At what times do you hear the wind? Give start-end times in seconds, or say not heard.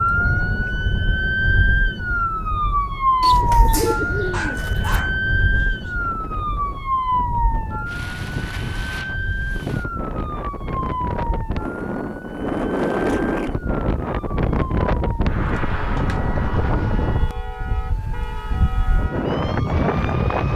5.0-20.5.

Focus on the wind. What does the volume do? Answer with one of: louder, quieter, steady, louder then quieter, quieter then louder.
louder.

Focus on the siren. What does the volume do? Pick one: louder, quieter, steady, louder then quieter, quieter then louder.
quieter.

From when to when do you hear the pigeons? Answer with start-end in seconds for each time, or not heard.
3.2-5.0.